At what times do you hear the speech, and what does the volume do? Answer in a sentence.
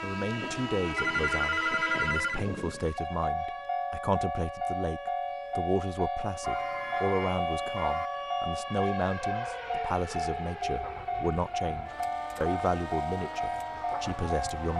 The speech can be heard from 0.0 to 14.7 s, at a steady volume.